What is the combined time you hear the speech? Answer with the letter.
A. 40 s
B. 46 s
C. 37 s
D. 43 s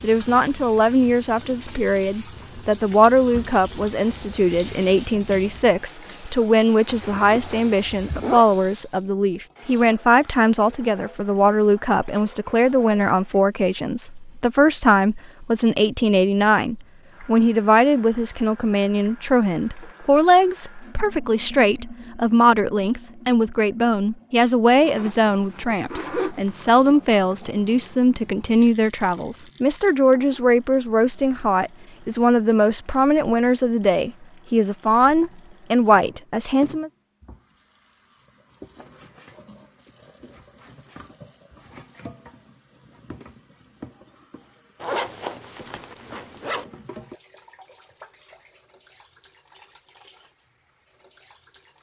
C.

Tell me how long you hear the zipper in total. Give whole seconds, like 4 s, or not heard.
5 s.